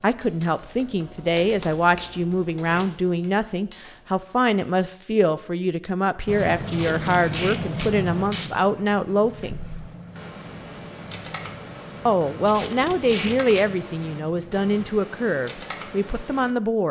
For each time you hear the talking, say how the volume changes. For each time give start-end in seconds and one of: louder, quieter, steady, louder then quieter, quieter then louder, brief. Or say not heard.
0.0-9.6 steady
12.1-16.8 quieter.